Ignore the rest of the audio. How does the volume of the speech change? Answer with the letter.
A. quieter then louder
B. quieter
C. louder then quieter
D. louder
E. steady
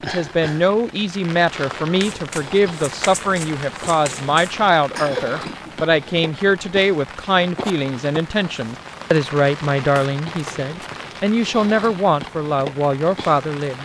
E.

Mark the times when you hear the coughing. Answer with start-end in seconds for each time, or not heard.
4.9-5.8.